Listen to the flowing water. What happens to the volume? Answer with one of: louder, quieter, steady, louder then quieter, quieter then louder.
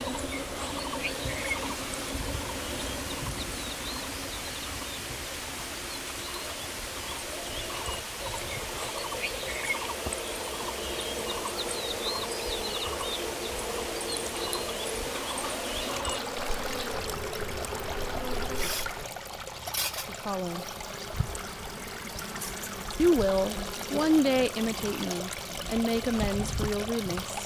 steady.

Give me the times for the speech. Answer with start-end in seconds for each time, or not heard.
20.1-20.6, 22.9-27.4.